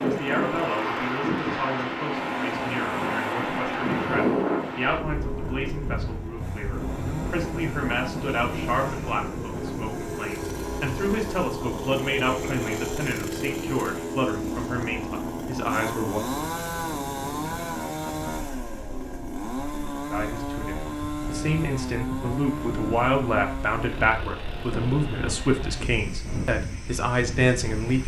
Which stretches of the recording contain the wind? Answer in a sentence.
The wind can be heard from 0.0 to 28.0 s.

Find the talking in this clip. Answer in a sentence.
You can hear the talking from 0.0 to 16.2 s and from 20.1 to 28.0 s.